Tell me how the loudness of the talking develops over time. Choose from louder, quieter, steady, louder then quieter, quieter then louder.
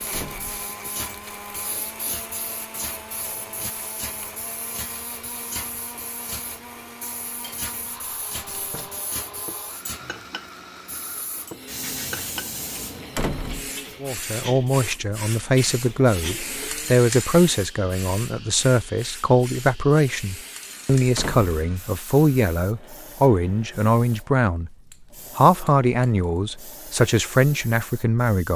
steady.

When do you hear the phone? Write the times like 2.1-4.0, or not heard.
not heard.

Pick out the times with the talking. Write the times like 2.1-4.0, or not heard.
14.0-24.7, 25.4-28.5.